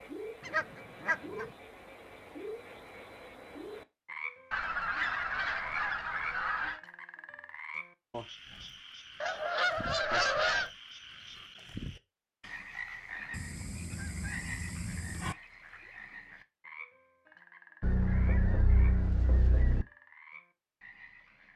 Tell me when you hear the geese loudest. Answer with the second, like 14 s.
10 s.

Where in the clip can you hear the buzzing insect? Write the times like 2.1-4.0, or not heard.
not heard.